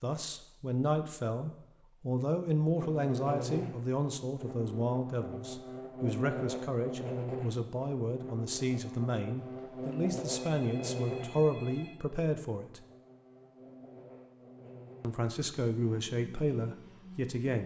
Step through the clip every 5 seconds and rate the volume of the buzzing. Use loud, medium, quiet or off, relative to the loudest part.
loud, loud, loud, medium.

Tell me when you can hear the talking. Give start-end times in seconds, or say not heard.
0.0-12.8, 15.0-17.6.